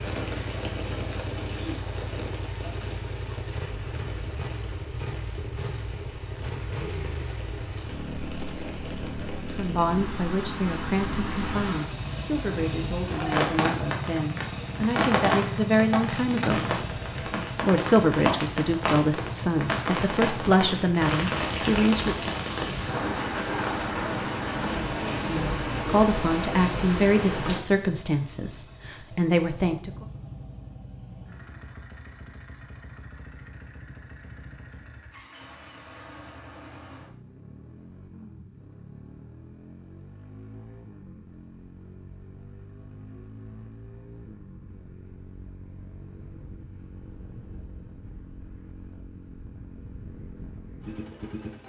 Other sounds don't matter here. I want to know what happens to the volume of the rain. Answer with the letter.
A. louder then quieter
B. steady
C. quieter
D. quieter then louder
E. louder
E.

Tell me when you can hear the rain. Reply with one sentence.
The rain can be heard from 0.0 to 27.6 s.